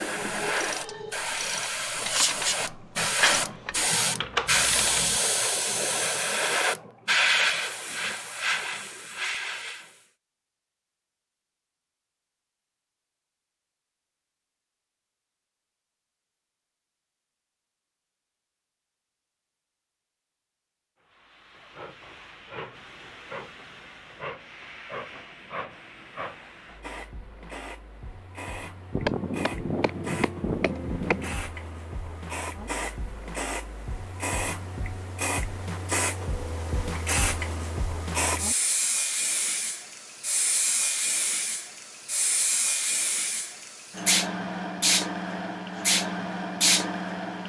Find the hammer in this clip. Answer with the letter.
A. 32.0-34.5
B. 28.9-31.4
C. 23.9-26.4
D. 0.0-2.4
B.